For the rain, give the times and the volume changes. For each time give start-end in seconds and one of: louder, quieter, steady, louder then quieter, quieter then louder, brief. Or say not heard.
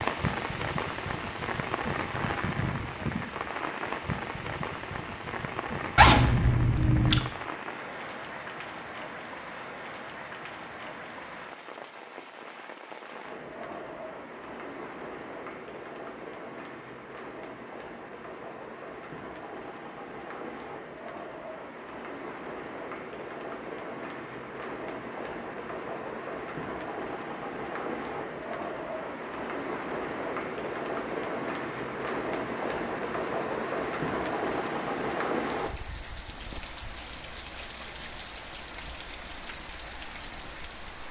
0.0-41.0 quieter then louder.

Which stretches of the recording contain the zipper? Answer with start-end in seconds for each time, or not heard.
6.0-7.2.